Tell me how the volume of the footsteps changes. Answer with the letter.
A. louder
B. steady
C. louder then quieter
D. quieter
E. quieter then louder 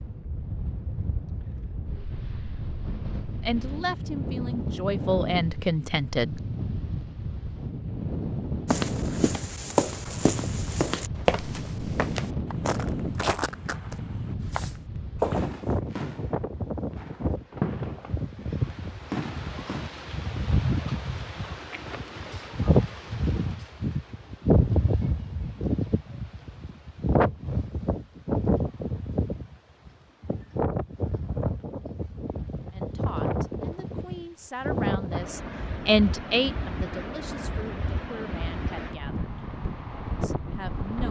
E.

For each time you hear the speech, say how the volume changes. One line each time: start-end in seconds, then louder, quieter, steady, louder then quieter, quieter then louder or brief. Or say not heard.
3.5-6.4 brief
32.7-39.3 louder then quieter
40.2-41.0 brief.